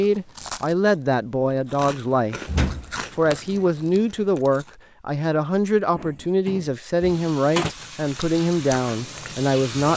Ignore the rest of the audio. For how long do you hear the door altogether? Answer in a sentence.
You can hear the door for 3 seconds altogether.